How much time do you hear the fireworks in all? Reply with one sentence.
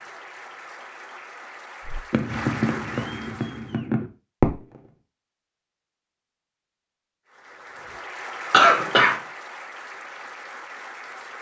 The fireworks can be heard for 3 seconds in total.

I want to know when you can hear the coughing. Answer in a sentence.
The coughing can be heard from 8.5 to 9.2 s.